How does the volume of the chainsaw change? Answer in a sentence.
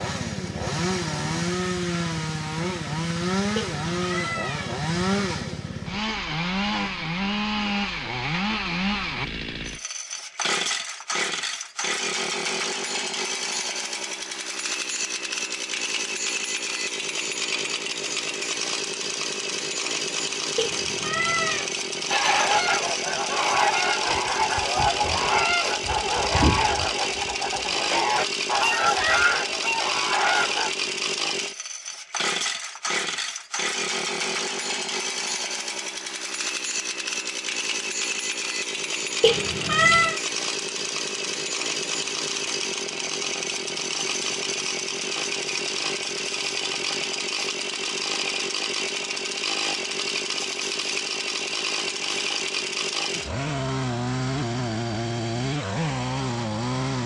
The volume of the chainsaw stays about the same.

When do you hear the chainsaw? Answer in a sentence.
You can hear the chainsaw from 0.0 to 57.0 s.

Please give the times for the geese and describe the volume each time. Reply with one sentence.
The geese can be heard from 22.1 to 30.7 s, at a steady volume.